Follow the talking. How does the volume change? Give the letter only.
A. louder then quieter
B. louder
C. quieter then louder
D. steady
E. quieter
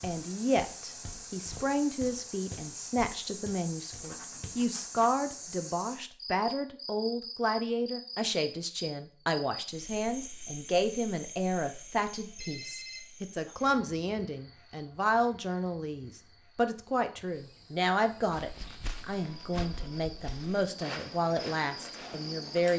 D.